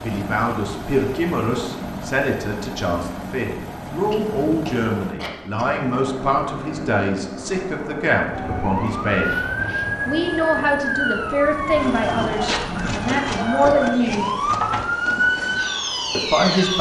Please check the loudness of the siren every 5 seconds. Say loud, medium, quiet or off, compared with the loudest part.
off, loud, loud, loud.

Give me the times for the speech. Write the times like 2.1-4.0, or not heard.
0.0-9.3, 10.1-14.2, 16.1-16.7.